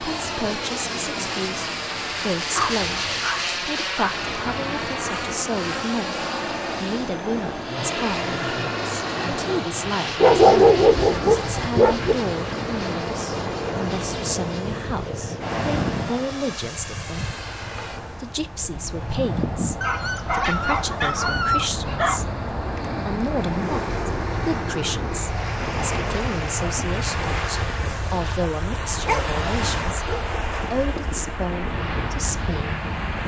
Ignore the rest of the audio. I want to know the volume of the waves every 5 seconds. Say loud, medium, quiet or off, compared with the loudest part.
medium, loud, loud, loud, loud, loud, loud.